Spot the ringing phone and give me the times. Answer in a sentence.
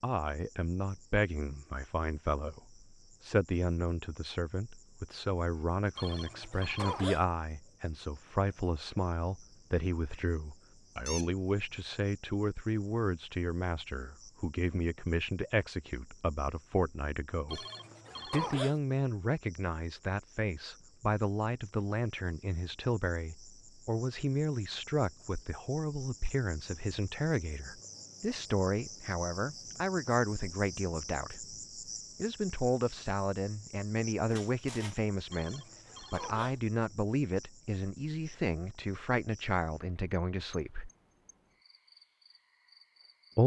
The ringing phone can be heard from 6.0 to 7.2 s, from 17.5 to 18.8 s and from 35.3 to 36.6 s.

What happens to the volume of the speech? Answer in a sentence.
The volume of the speech stays about the same.